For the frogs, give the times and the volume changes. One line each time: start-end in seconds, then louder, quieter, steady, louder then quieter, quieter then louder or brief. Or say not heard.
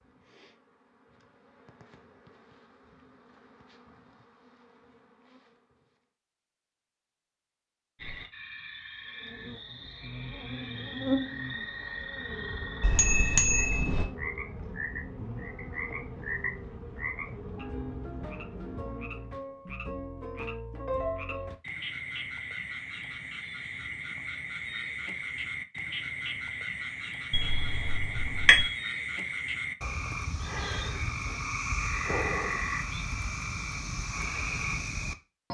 8.0-35.4 louder.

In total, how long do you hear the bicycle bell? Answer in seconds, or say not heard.
3 s.